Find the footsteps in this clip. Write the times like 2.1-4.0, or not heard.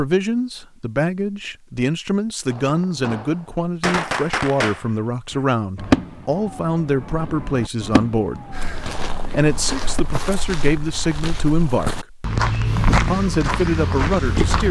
8.5-14.6.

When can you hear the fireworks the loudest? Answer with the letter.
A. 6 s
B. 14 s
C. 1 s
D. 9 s
A.